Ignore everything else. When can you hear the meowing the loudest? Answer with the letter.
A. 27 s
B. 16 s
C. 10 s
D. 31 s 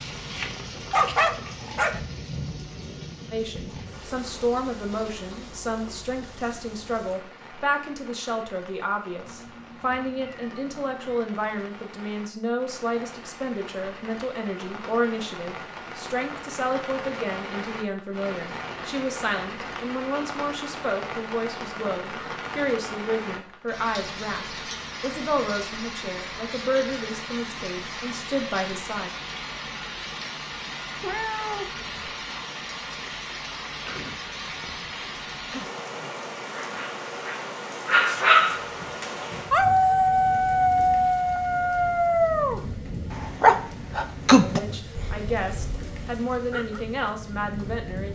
D.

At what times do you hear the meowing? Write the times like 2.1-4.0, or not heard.
9.2-11.2, 31.0-31.9.